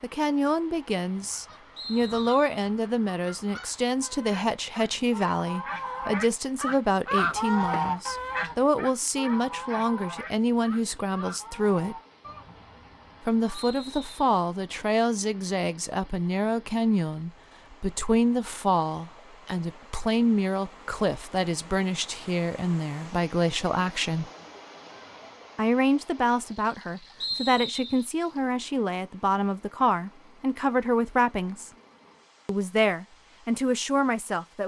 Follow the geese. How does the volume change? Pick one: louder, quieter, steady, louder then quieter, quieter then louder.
louder then quieter.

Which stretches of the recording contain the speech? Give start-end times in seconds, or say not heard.
0.0-11.9, 13.2-24.2, 25.6-31.7, 32.5-34.6.